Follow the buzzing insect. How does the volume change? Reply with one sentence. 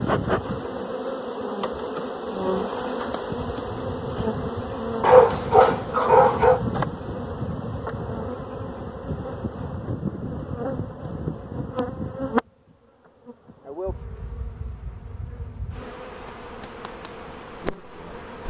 The loudness of the buzzing insect goes down.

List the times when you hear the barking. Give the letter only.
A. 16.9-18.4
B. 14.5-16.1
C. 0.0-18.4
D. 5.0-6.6
D.